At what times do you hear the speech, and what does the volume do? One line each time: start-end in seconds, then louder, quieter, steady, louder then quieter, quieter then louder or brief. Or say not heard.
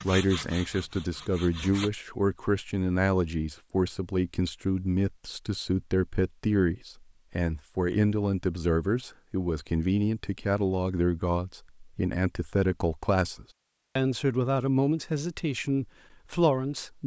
0.0-17.0 steady.